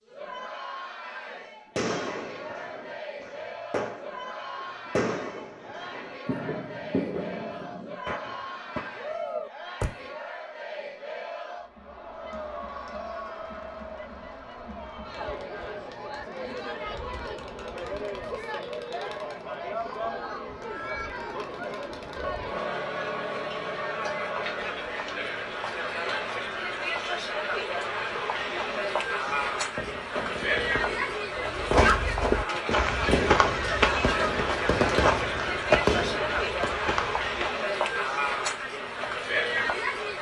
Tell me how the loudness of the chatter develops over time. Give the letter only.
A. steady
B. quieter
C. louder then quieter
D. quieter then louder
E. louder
E.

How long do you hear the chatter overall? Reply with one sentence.
You can hear the chatter for 40 seconds altogether.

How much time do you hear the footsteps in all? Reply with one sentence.
The footsteps can be heard for 6 seconds in total.